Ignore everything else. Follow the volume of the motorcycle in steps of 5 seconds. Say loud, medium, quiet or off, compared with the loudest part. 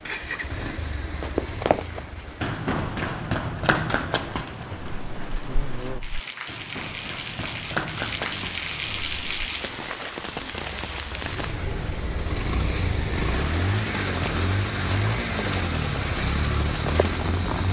medium, quiet, loud, loud.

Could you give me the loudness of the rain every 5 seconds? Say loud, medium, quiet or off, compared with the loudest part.
medium, loud, loud, loud.